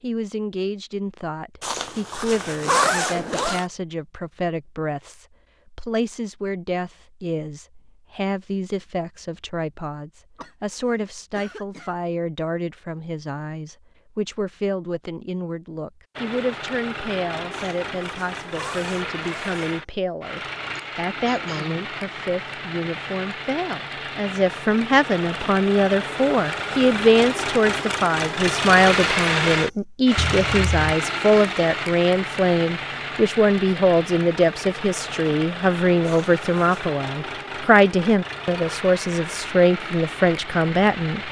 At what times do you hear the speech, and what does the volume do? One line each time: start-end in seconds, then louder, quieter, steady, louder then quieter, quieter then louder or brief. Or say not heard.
0.0-41.2 louder.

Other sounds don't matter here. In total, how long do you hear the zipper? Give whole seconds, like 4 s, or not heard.
5 s.